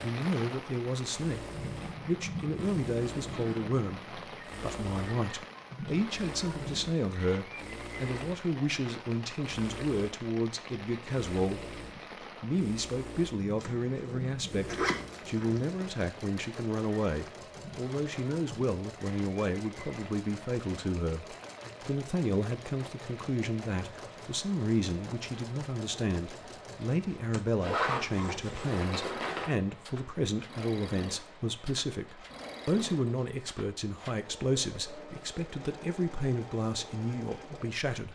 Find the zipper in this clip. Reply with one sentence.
You can hear the zipper from 2.5 to 3.6 s, from 13.6 to 15.7 s and from 27.6 to 29.5 s.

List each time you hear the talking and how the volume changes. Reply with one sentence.
You can hear the talking from 0.0 to 11.8 s, at a steady volume; and from 12.4 to 38.1 s, at a steady volume.